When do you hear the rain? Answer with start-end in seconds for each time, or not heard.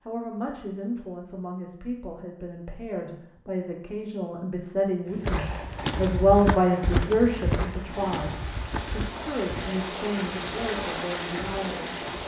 5.0-12.2.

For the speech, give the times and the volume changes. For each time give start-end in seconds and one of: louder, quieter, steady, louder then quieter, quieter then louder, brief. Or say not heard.
0.1-12.2 louder then quieter.